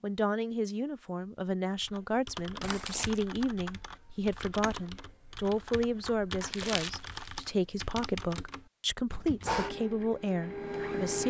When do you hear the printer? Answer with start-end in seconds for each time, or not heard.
9.4-11.2.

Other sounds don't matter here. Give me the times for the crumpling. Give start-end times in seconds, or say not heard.
2.6-3.2, 6.4-7.3.